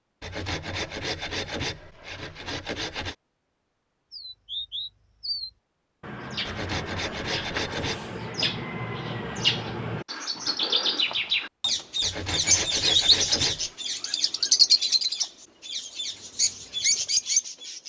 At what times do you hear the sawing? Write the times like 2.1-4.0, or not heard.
0.2-3.1, 6.5-8.0, 12.0-13.7.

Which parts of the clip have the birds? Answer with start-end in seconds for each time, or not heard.
4.1-17.8.